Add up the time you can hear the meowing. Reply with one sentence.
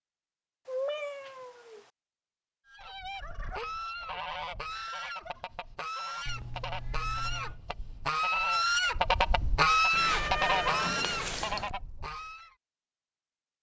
You can hear the meowing for 4 seconds altogether.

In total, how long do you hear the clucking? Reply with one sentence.
The clucking can be heard for 10 seconds in total.